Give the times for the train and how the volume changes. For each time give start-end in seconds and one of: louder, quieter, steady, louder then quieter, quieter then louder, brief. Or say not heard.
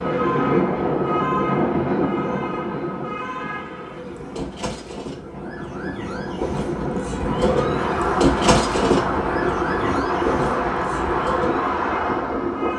0.0-12.7 quieter then louder.